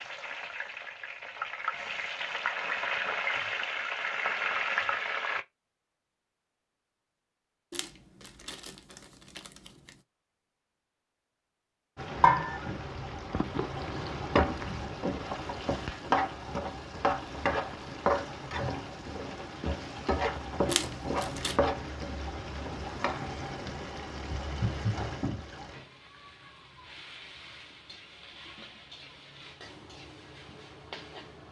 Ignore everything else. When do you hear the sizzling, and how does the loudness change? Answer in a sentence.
The sizzling can be heard from 0.0 to 5.5 s, getting louder; and from 11.9 to 31.4 s, getting quieter.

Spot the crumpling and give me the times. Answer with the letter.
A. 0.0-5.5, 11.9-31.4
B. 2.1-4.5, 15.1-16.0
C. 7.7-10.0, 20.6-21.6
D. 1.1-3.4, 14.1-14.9
C.